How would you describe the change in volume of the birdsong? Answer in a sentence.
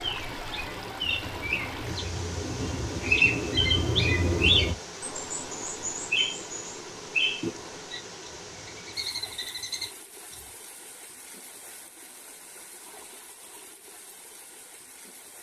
The loudness of the birdsong goes up, then down.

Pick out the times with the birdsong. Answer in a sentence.
You can hear the birdsong from 0.0 to 10.5 s.